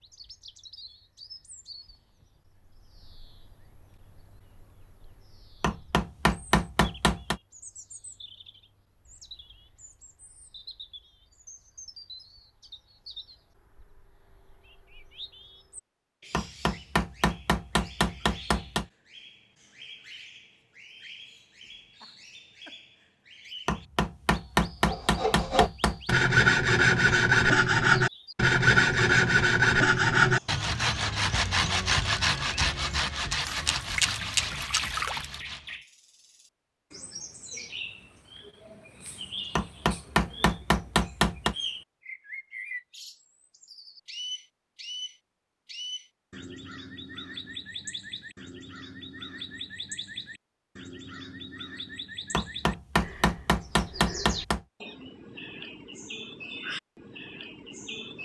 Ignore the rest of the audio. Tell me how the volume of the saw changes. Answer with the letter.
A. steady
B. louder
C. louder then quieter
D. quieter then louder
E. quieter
E.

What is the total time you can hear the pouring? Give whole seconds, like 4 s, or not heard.
2 s.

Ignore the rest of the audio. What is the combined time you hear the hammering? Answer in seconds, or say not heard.
11 s.